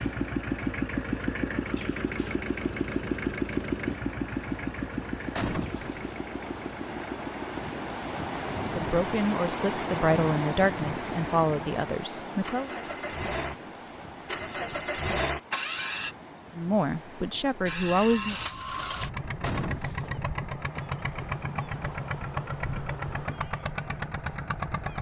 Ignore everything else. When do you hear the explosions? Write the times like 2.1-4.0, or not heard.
5.3-6.0, 19.4-20.1.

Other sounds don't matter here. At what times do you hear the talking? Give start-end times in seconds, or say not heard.
8.7-12.7, 16.6-18.4.